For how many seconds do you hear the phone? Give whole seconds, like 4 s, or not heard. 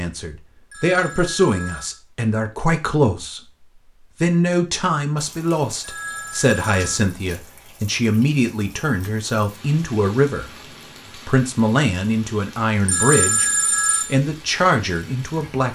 4 s.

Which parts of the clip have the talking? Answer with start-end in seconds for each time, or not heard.
0.0-3.4, 4.2-10.4, 11.2-15.7.